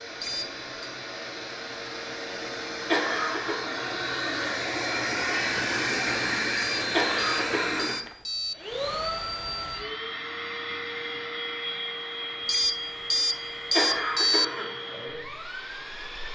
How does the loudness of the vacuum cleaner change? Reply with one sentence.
The volume of the vacuum cleaner goes up, then down.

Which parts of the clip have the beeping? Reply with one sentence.
The beeping can be heard from 0.2 to 0.9 s, from 6.5 to 8.6 s and from 12.4 to 14.4 s.